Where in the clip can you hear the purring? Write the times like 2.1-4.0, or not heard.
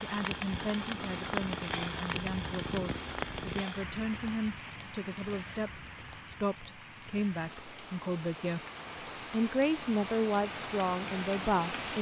0.2-3.6.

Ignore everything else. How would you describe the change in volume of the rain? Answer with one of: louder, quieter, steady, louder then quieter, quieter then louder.
quieter then louder.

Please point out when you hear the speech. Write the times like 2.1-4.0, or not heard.
0.0-8.6, 9.3-11.9.